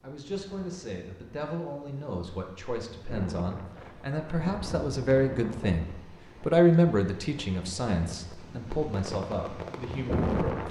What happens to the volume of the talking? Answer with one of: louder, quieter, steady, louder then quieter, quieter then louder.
louder then quieter.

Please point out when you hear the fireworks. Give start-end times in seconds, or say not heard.
8.7-10.6.